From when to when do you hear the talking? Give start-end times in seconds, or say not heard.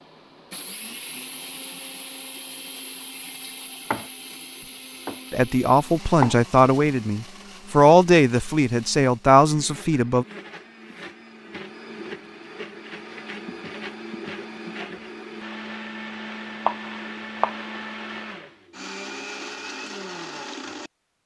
5.3-10.2.